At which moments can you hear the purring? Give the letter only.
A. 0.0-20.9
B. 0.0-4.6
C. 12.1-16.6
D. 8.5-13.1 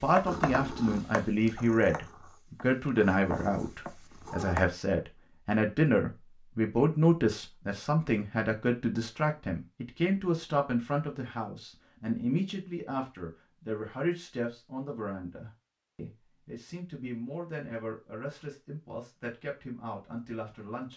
B.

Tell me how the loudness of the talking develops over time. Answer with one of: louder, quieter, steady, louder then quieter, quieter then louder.
quieter.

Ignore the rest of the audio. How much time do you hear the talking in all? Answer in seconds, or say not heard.
21 s.